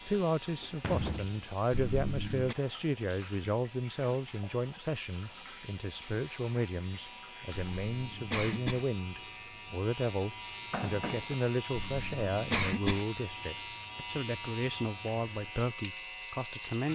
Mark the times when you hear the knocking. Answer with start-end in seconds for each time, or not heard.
0.6-1.5, 10.7-11.3.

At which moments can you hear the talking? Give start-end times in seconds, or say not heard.
0.1-16.9.